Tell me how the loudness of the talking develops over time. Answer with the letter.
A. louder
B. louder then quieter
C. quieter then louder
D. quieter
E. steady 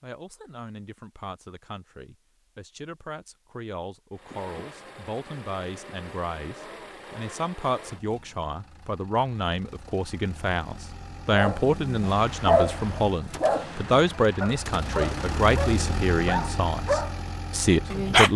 A.